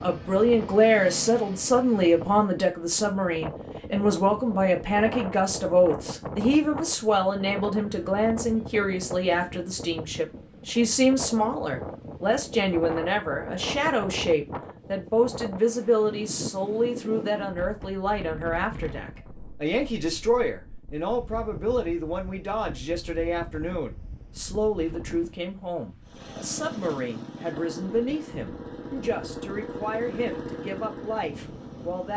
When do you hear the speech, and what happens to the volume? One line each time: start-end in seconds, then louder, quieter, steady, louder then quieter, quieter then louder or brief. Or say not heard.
0.0-32.1 quieter.